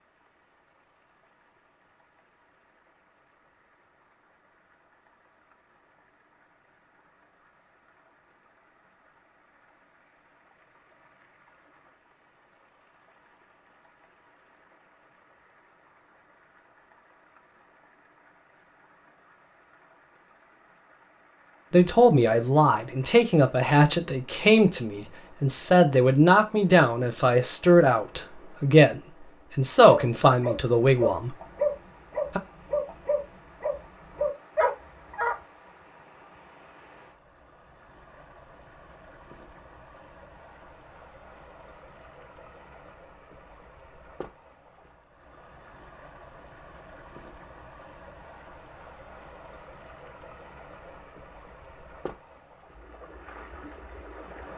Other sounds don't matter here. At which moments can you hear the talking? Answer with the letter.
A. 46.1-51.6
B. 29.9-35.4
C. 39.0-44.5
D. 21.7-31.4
D.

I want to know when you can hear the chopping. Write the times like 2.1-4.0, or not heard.
not heard.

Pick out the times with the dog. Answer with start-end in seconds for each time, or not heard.
29.9-35.4.